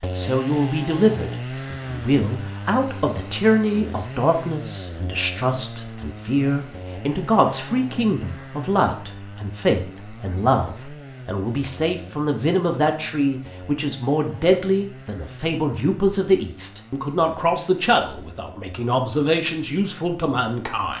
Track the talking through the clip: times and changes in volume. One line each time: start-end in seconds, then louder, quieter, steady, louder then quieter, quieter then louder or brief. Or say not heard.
0.0-20.9 steady.